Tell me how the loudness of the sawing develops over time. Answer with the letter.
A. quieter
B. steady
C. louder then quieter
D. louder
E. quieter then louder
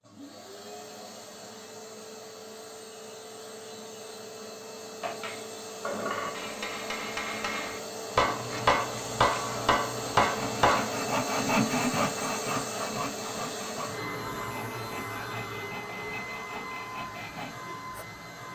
C.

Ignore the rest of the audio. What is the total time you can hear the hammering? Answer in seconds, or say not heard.
6 s.